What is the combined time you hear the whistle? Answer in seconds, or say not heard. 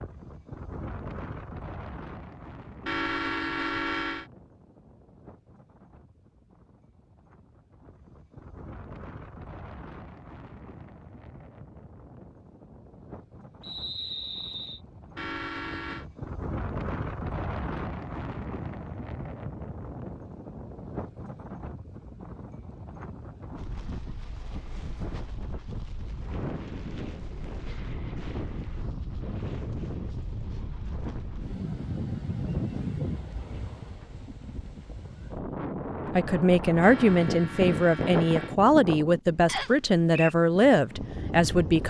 2 s.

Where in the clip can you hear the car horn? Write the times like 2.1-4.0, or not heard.
2.9-4.2, 15.2-16.1, 36.8-38.5.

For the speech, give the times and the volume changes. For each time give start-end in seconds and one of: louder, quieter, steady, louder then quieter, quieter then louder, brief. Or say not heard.
36.1-41.8 steady.